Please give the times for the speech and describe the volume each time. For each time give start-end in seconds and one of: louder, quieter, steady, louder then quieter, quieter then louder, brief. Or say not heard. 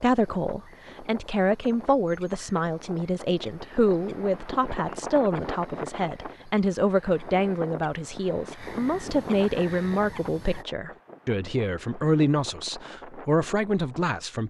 0.0-14.4 steady.